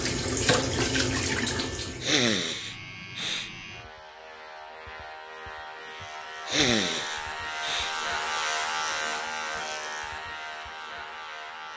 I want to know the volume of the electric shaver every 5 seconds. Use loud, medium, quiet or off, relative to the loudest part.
medium, loud, medium.